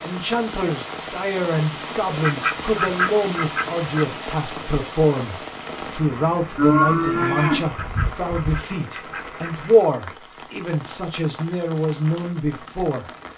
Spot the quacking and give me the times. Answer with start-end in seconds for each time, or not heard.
2.2-4.2, 7.2-9.7.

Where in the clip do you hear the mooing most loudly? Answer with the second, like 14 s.
7 s.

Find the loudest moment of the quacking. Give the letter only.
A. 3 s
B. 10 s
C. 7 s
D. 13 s
A.